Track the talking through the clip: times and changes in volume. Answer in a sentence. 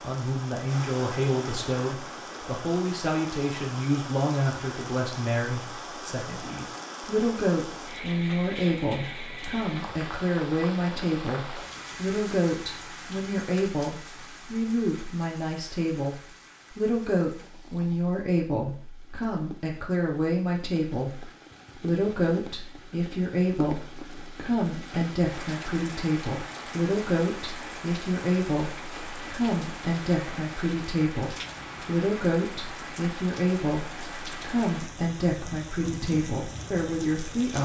The talking can be heard from 0.0 to 37.5 s, at a steady volume.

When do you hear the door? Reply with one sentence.
You can't hear the door here.